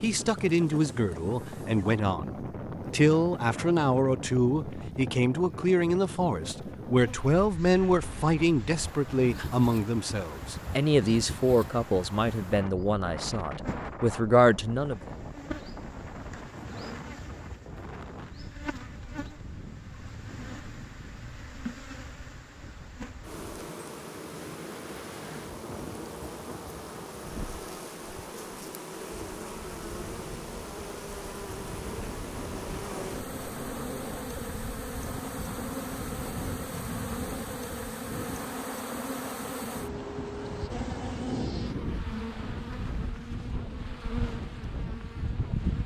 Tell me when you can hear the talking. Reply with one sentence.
You can hear the talking from 0.0 to 15.1 s.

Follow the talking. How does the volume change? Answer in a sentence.
The loudness of the talking stays about the same.